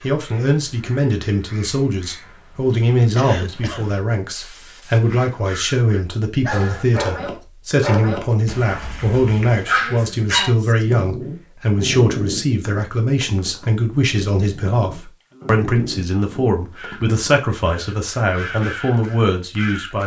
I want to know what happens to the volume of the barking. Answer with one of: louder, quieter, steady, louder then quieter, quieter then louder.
quieter.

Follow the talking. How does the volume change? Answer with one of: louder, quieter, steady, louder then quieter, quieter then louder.
steady.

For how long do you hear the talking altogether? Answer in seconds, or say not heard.
20 s.